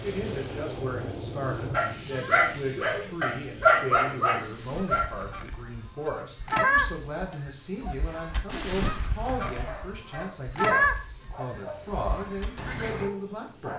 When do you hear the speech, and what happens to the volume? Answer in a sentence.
You can hear the speech from 0.0 to 13.7 s, at a steady volume.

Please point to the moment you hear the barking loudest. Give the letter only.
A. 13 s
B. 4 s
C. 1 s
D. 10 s
B.